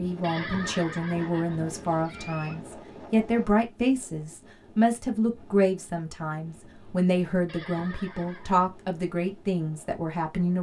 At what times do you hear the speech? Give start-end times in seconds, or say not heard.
0.0-10.5.